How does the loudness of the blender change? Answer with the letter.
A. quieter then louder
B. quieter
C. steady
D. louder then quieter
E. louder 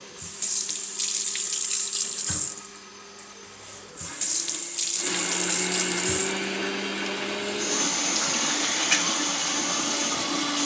E.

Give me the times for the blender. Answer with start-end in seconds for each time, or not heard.
0.0-10.6.